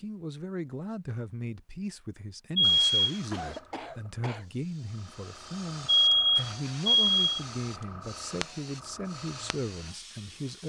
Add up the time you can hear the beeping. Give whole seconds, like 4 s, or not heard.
2 s.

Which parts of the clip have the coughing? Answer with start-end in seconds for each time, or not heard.
3.3-4.5.